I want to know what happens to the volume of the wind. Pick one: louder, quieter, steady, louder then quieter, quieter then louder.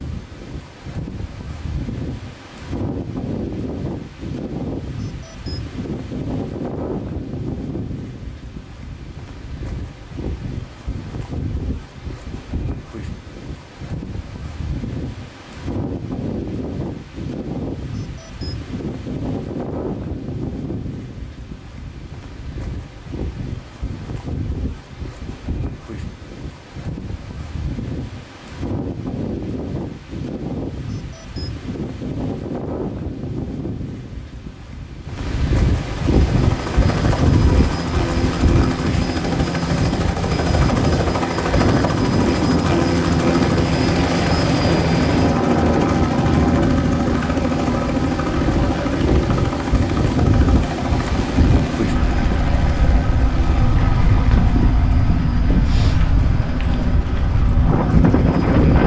louder.